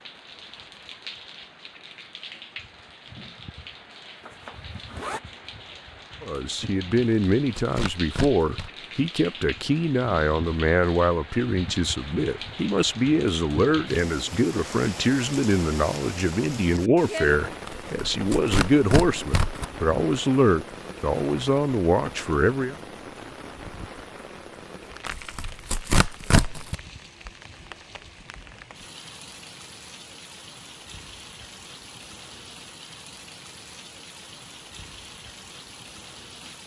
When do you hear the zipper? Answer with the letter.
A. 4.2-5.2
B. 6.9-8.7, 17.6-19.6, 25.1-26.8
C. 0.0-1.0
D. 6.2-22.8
A.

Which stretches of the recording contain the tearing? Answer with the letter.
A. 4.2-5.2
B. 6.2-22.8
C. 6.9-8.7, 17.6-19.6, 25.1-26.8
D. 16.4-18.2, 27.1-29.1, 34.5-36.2
C.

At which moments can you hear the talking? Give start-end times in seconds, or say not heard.
6.2-22.8.